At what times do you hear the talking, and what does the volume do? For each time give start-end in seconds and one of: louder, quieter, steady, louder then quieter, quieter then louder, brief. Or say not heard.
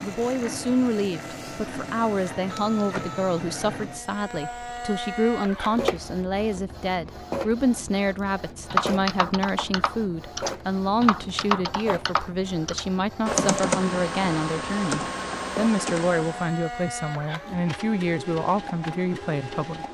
0.0-19.8 steady.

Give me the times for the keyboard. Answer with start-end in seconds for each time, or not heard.
8.7-16.5.